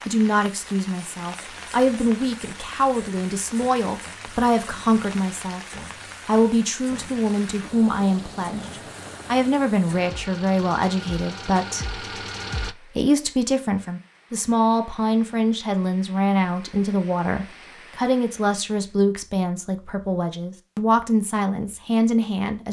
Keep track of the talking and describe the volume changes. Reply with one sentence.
The volume of the talking stays about the same.